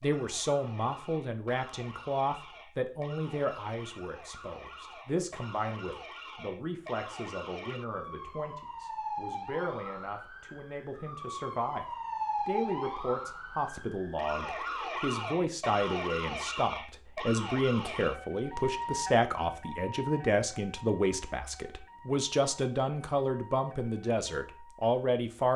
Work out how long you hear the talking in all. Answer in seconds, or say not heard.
25 s.